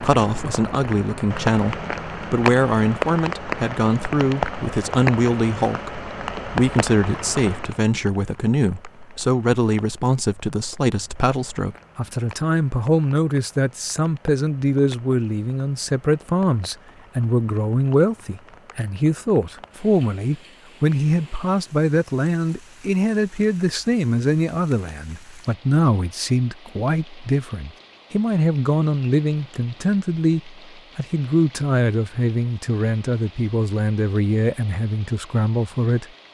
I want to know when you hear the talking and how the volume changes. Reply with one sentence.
You can hear the talking from 0.0 to 36.0 s, at a steady volume.